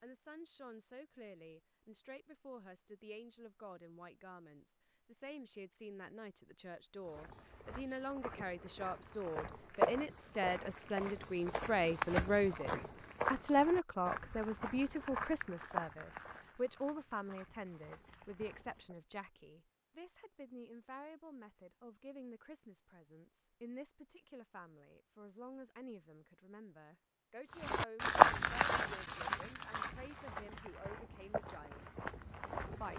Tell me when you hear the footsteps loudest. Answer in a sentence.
The loudest moment of the footsteps is at 28 seconds.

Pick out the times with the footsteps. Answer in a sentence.
You can hear the footsteps from 7.0 to 18.9 s and from 27.5 to 32.9 s.